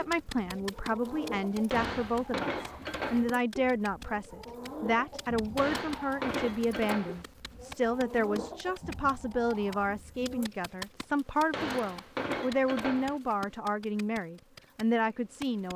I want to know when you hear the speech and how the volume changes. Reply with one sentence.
The speech can be heard from 0.0 to 15.7 s, at a steady volume.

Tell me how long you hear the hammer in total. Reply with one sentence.
The hammer can be heard for 5 seconds in total.